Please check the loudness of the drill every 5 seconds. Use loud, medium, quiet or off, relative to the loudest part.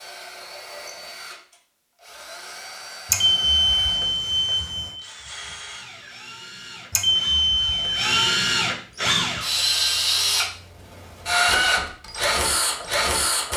quiet, loud, loud.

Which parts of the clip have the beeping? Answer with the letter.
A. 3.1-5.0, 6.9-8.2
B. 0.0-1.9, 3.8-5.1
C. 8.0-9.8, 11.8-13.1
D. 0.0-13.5
A.